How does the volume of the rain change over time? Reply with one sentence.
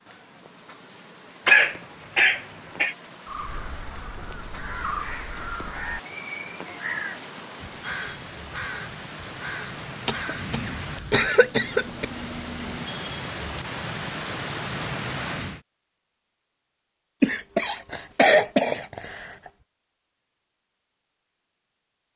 The loudness of the rain goes up.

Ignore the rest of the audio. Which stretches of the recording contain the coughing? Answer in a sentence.
The coughing can be heard from 1.4 to 3.0 s, from 10.1 to 12.1 s and from 17.2 to 19.4 s.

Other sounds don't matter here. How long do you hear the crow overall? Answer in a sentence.
You can hear the crow for 7 seconds altogether.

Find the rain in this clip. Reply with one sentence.
The rain can be heard from 0.0 to 15.6 s.